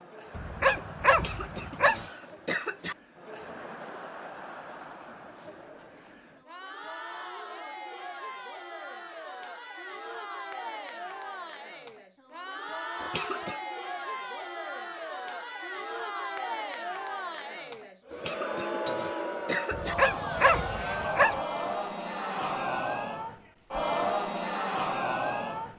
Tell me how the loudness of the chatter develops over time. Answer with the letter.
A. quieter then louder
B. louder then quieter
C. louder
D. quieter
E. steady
C.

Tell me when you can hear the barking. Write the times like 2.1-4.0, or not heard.
0.3-2.0, 19.7-21.4.